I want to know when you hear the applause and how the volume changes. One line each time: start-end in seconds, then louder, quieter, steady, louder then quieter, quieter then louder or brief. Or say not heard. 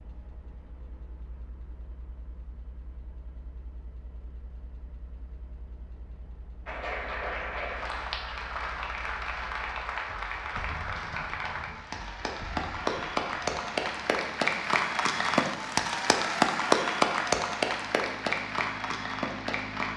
6.7-19.9 louder.